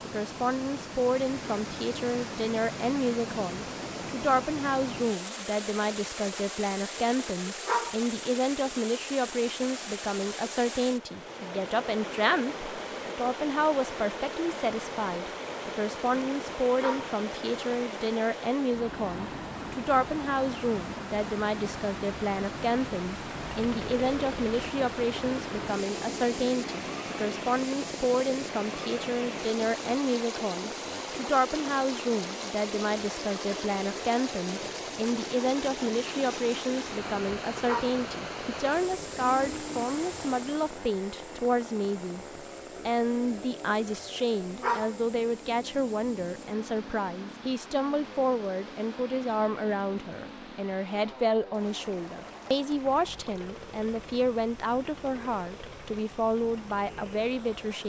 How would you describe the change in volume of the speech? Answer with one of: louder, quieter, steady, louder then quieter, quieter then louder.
steady.